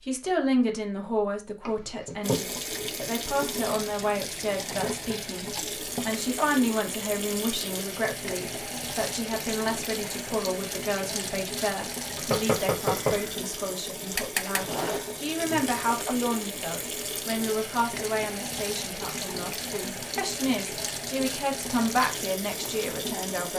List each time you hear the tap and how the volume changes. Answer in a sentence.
The tap can be heard from 2.2 to 23.5 s, at a steady volume.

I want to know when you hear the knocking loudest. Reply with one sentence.
The loudest moment of the knocking is at 13 seconds.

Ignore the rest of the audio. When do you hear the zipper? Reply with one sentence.
You can hear the zipper from 14.6 to 16.1 s.